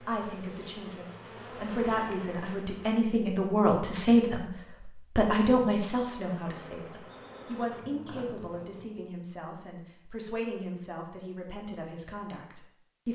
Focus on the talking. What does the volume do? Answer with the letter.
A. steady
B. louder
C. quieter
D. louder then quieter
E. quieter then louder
D.